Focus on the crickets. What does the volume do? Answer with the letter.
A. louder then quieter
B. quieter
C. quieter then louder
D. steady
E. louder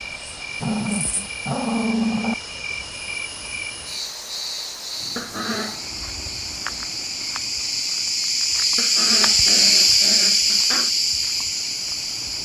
E.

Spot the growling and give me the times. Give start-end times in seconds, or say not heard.
0.6-2.4, 5.2-5.8, 8.8-10.9.